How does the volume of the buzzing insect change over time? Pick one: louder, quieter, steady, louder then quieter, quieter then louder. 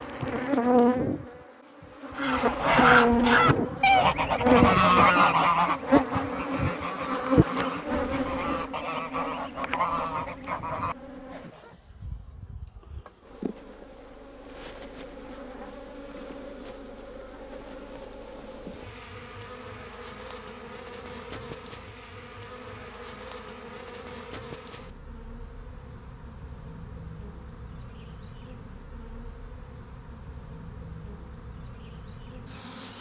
quieter.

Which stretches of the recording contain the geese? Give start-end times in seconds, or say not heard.
2.1-11.7.